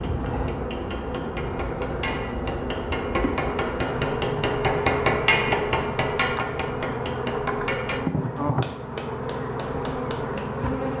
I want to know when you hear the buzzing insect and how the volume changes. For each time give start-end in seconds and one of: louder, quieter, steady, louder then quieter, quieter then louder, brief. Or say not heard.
0.0-10.9 steady.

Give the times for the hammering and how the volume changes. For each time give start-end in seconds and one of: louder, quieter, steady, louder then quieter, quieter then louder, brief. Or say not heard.
0.0-10.7 louder then quieter.